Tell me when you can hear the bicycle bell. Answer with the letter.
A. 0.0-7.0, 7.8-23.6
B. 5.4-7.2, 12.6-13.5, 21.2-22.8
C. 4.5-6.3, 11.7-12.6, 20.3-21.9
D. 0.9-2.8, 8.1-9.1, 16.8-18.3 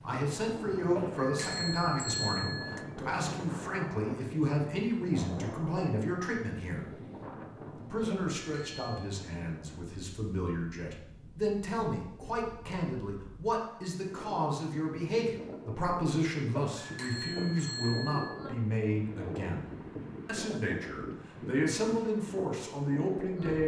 D.